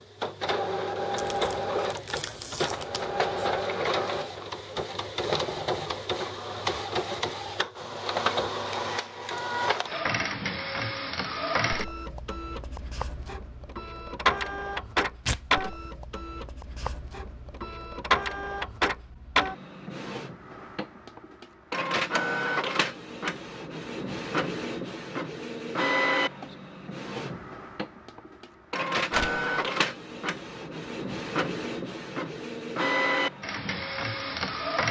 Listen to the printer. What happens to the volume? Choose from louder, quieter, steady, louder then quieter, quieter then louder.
steady.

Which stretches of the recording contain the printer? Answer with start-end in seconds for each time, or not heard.
0.0-34.8.